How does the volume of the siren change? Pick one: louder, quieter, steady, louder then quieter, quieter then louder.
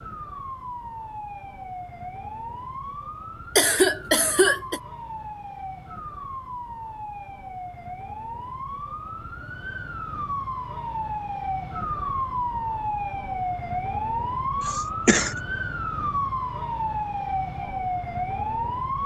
louder.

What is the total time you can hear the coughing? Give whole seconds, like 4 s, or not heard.
2 s.